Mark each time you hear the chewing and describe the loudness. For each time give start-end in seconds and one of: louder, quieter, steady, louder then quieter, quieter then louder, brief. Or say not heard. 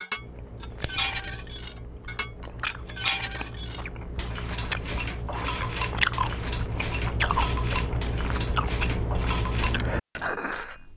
0.1-10.3 louder.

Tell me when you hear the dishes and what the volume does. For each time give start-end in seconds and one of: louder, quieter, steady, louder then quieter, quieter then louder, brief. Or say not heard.
0.0-10.9 steady.